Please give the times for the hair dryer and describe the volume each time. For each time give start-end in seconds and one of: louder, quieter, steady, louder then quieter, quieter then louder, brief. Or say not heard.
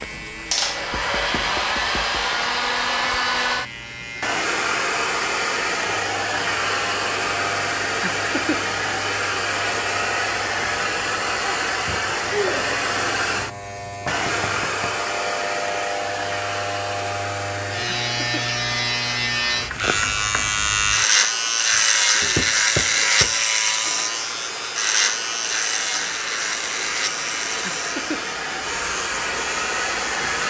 0.0-30.4 quieter then louder.